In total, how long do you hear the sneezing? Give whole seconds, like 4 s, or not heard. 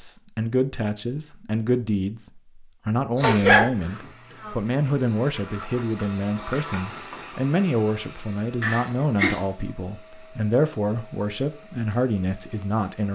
2 s.